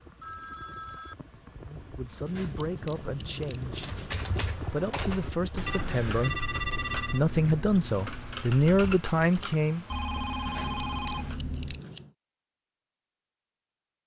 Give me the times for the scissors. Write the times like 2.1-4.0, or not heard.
2.2-4.2, 10.4-12.1.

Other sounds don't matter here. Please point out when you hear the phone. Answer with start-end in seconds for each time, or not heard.
0.2-1.6, 5.7-7.2, 9.9-11.6.